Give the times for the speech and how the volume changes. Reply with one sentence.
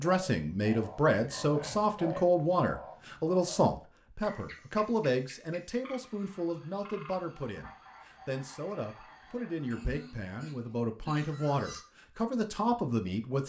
The speech can be heard from 0.0 to 13.4 s, getting quieter then louder.